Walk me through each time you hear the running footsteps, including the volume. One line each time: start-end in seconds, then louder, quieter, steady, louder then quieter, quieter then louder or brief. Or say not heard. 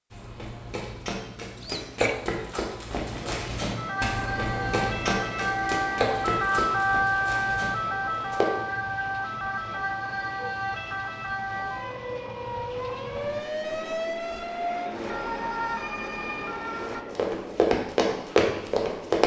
0.1-8.4 louder then quieter
17.1-19.2 brief.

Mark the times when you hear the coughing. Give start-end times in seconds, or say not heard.
1.6-2.2.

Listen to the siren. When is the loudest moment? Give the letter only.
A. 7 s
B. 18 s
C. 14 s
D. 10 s
A.